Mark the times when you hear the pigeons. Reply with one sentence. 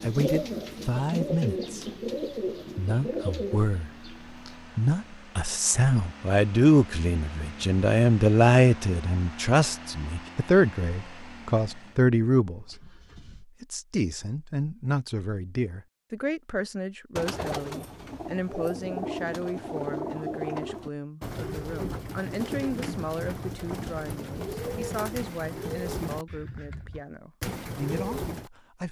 You can hear the pigeons from 0.0 to 4.6 s and from 17.1 to 28.5 s.